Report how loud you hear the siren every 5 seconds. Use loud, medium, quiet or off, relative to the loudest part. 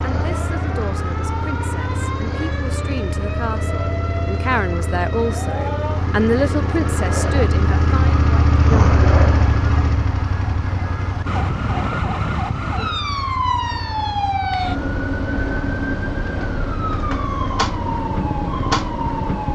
medium, medium, loud, loud.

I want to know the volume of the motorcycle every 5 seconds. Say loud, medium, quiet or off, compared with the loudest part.
medium, loud, medium, medium.